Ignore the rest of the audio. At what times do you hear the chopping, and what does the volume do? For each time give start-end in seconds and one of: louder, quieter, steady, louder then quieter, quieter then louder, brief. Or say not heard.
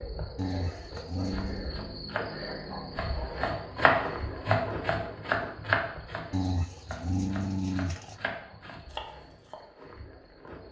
0.9-9.6 louder then quieter.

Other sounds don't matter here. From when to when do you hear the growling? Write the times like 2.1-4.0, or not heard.
0.3-1.7, 6.3-8.2.